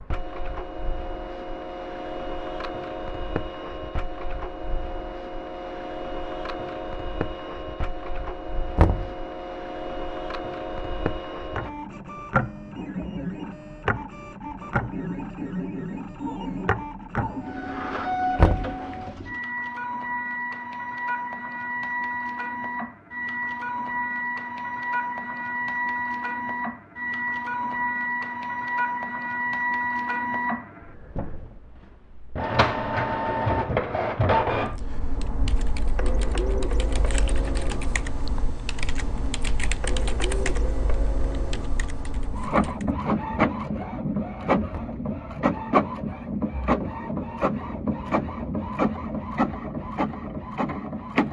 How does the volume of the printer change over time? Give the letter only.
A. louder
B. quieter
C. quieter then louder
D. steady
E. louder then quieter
A.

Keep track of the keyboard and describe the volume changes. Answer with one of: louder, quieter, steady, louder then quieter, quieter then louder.
louder then quieter.